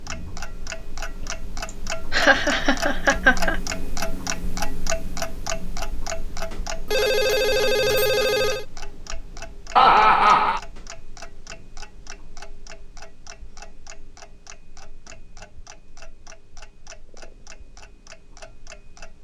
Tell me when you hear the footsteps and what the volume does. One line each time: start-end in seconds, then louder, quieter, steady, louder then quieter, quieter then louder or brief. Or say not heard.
not heard.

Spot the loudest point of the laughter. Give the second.
10 s.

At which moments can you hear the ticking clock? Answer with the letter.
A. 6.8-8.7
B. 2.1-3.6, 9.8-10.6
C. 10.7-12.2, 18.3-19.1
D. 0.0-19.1
D.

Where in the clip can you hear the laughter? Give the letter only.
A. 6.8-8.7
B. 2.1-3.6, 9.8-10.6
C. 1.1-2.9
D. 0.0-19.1
B.